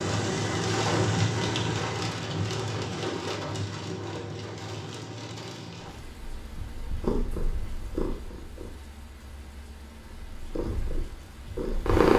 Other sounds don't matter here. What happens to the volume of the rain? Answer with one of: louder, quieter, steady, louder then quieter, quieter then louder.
quieter.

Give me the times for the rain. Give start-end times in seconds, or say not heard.
0.0-12.0.